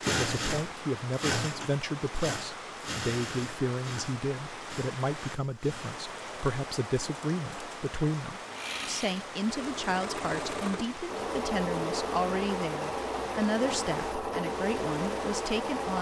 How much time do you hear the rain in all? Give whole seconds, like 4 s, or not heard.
16 s.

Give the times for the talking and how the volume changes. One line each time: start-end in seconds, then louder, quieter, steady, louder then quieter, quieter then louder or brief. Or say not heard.
0.1-15.9 steady.